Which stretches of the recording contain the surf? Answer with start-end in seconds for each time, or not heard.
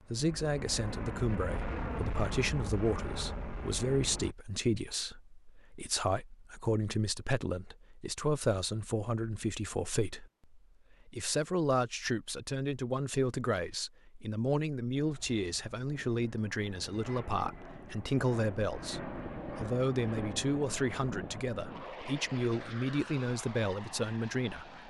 not heard.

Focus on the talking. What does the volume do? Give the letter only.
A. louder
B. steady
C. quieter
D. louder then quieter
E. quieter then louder
B.